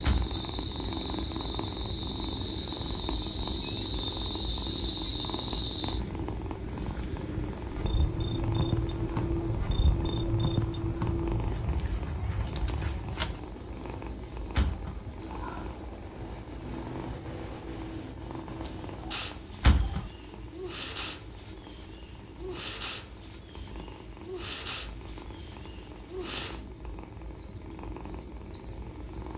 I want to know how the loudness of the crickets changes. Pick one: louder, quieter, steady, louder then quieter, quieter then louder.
quieter.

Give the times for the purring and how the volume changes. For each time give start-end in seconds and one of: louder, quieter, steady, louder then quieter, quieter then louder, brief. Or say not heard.
0.0-29.3 quieter.